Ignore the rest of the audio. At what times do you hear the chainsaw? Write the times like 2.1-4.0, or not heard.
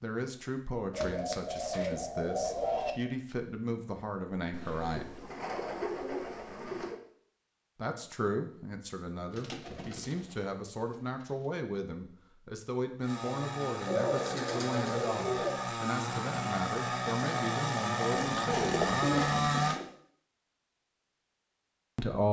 13.0-19.8.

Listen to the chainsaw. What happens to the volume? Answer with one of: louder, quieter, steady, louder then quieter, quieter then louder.
louder.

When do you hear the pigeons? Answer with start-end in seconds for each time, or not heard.
0.9-3.0, 4.5-7.0, 9.3-11.5, 13.8-15.6, 18.1-19.9.